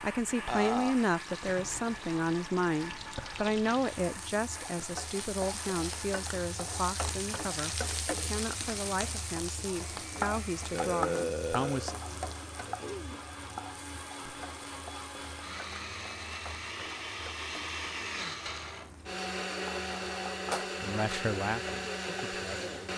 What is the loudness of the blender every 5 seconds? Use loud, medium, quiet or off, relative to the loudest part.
medium, quiet, medium, loud, loud.